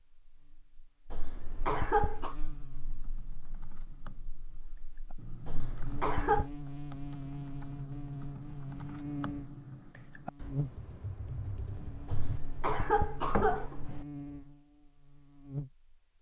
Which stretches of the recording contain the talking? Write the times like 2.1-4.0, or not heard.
not heard.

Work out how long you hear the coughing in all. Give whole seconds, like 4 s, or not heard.
4 s.